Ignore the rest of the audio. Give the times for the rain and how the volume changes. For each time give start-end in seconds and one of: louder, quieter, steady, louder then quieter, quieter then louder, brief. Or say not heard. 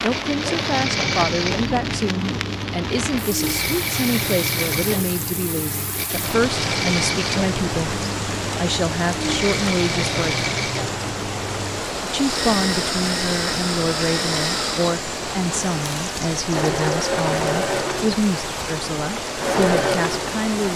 0.0-20.7 steady.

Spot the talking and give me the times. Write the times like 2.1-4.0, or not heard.
0.0-10.4, 12.0-20.7.